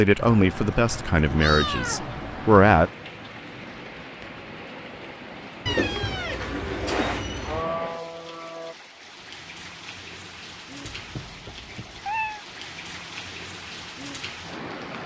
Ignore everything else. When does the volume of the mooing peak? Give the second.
8 s.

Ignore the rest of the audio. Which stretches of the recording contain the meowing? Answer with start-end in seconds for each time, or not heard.
0.1-3.0, 5.7-7.6, 10.8-12.4.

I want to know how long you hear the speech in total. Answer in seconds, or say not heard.
3 s.